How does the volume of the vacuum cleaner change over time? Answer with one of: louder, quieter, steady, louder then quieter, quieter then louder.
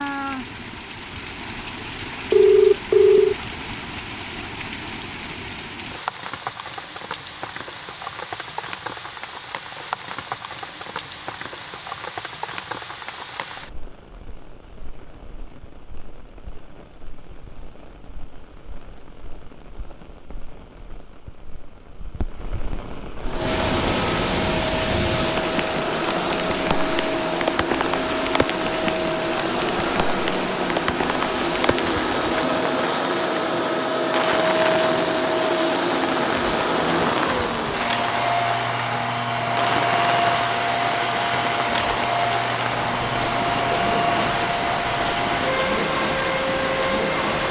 steady.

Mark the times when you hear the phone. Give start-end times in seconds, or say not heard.
2.3-3.4.